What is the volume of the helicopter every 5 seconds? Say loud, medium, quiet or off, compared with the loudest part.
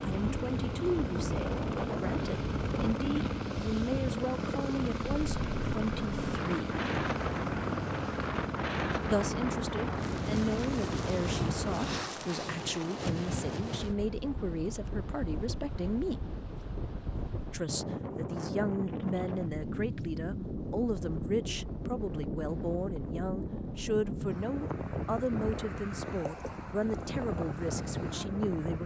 loud, loud, loud, off, off, off.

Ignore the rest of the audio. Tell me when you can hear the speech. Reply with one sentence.
The speech can be heard from 0.0 to 6.8 s, from 9.1 to 16.2 s and from 17.5 to 28.8 s.